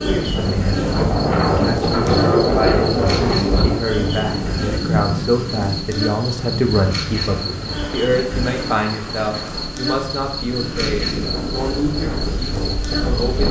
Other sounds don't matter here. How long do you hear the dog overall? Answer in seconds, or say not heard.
not heard.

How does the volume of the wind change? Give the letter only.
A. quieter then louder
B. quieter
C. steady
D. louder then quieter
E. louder
A.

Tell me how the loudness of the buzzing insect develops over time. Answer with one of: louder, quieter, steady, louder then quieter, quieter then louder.
steady.